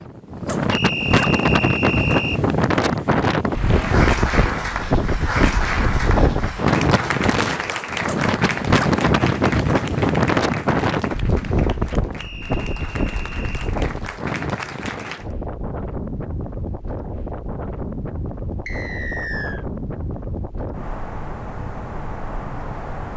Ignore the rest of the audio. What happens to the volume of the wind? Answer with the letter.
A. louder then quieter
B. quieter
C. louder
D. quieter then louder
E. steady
B.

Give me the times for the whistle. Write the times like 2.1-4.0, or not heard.
0.7-2.4, 12.2-13.7, 18.6-19.6.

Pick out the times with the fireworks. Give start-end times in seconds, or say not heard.
not heard.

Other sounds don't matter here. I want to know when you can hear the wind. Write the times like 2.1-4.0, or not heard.
0.0-23.1.